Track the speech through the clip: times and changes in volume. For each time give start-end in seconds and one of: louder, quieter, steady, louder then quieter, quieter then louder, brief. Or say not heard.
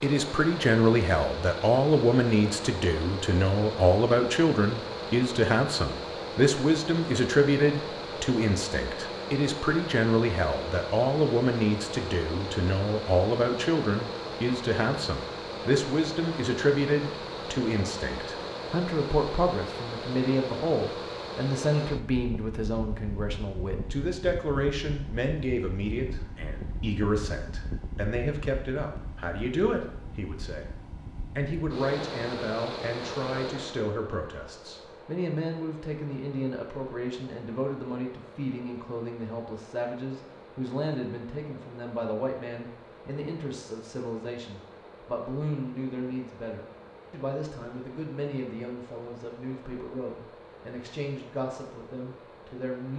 0.0-52.9 quieter.